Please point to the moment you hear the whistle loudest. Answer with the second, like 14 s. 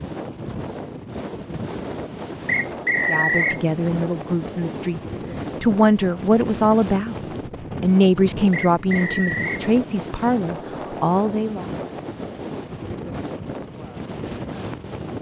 3 s.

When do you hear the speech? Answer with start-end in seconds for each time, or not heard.
3.0-11.7.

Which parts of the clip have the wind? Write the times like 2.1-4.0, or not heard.
0.0-15.1.